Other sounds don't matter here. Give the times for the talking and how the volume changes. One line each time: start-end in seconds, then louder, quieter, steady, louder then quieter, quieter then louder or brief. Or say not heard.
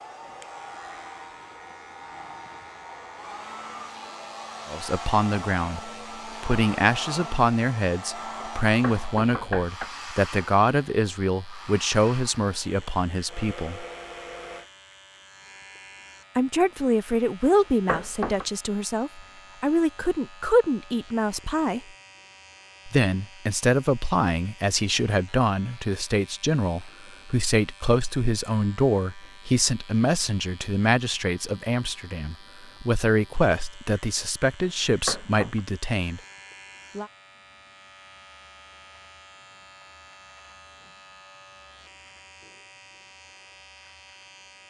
4.7-13.8 steady
16.4-21.8 quieter then louder
22.9-36.2 steady.